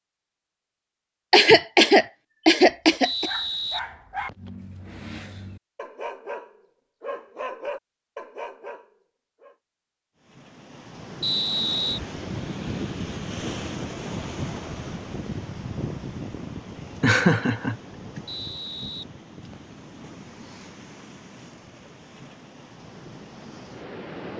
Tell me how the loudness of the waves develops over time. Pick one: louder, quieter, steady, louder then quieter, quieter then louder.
quieter.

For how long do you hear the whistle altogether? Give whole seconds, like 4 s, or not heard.
4 s.